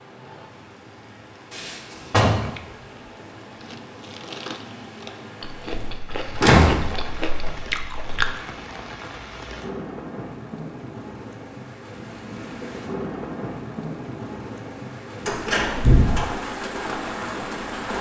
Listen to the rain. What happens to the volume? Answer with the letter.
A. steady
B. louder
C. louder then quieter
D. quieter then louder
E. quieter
B.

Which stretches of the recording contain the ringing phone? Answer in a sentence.
The ringing phone can't be heard in this clip.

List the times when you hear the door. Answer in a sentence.
You can hear the door from 1.5 to 2.5 s, from 6.3 to 7.5 s and from 15.2 to 16.2 s.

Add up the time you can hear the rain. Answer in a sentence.
You can hear the rain for 18 seconds altogether.